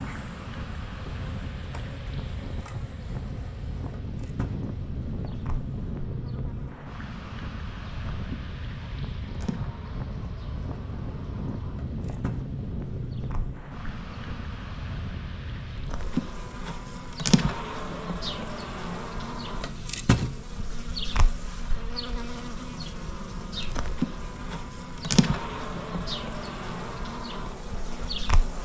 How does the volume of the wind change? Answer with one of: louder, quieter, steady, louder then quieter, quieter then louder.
quieter.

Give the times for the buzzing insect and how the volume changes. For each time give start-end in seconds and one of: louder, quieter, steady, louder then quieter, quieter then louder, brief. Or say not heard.
0.0-28.6 louder.